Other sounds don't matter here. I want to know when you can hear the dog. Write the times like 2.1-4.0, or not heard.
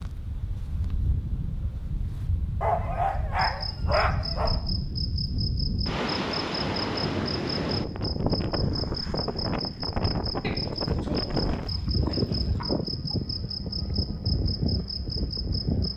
2.6-4.6, 10.4-12.7.